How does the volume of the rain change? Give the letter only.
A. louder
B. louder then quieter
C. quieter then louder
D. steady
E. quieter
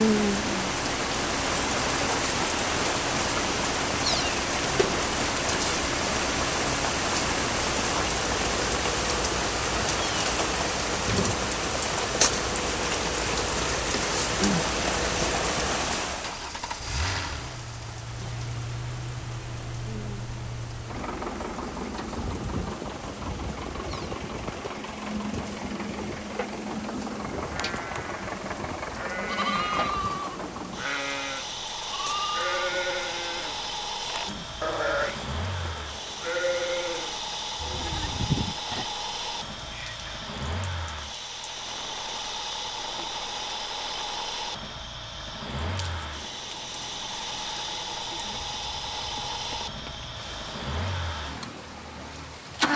E.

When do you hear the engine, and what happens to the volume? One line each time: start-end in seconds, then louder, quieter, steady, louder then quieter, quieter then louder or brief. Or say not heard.
0.0-52.7 steady.